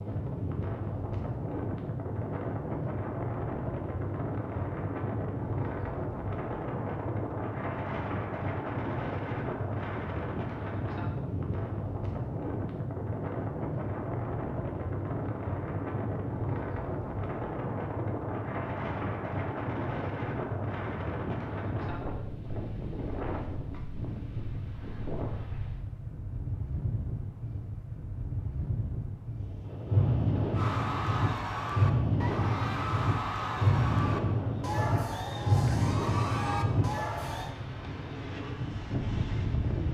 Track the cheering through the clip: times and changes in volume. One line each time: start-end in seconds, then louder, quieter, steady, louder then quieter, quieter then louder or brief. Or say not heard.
30.5-37.5 steady.